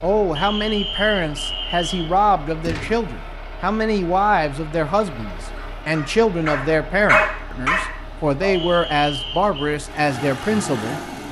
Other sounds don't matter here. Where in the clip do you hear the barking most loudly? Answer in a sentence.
The loudest moment of the barking is at 7 seconds.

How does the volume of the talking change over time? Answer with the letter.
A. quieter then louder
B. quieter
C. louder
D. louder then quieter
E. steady
E.